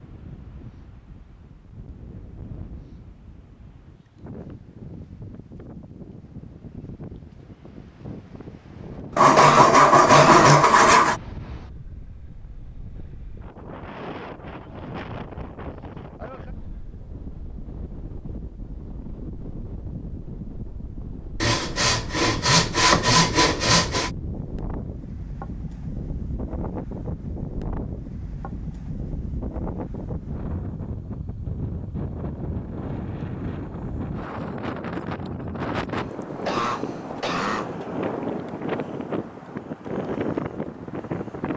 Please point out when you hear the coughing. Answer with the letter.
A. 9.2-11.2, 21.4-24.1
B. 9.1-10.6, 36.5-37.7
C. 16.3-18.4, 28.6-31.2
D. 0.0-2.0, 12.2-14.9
B.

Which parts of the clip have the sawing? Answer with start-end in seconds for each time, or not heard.
9.2-11.2, 21.4-24.1.